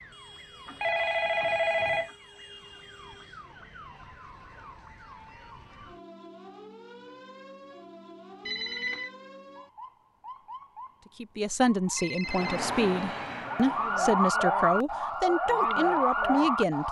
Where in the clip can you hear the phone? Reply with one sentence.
The phone can be heard from 0.7 to 2.1 s, from 8.4 to 9.1 s and from 11.9 to 12.7 s.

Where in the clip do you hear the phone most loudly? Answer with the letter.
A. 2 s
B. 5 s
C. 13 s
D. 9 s
A.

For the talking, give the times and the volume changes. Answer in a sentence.
You can hear the talking from 11.2 to 16.8 s, at a steady volume.